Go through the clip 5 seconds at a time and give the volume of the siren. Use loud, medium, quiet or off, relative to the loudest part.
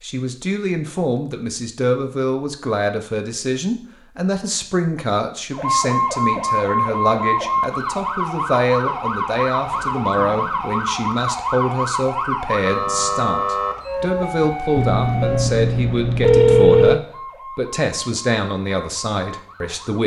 off, loud, loud, medium.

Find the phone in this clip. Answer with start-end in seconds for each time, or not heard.
14.8-17.0.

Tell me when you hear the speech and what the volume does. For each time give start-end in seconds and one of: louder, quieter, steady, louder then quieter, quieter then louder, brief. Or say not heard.
0.0-20.0 steady.